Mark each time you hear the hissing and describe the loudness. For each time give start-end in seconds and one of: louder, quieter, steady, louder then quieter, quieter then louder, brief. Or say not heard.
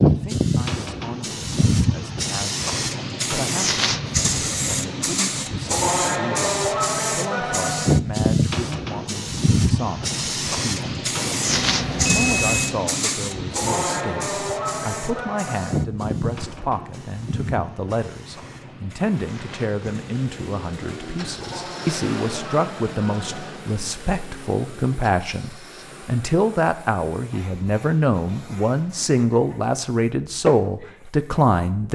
0.0-31.8 quieter.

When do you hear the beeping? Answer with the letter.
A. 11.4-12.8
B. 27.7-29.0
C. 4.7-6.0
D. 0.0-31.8
A.